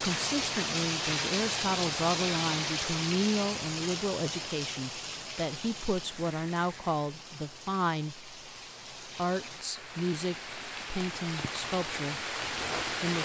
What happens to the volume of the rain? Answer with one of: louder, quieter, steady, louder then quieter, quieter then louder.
quieter then louder.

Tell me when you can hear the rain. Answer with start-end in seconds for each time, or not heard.
0.0-13.1.